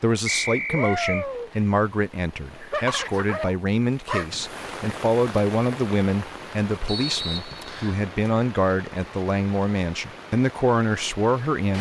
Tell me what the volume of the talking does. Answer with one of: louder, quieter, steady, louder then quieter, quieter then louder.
steady.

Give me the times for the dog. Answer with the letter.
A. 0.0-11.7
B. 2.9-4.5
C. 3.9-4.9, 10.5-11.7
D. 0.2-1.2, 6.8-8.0
B.